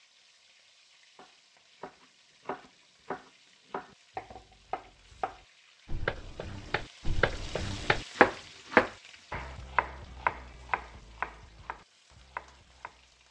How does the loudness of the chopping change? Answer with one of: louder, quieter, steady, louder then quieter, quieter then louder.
louder then quieter.